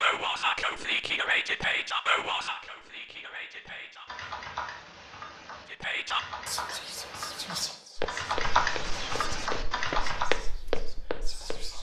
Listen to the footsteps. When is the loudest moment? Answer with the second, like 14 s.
10 s.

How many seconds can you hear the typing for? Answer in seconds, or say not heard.
6 s.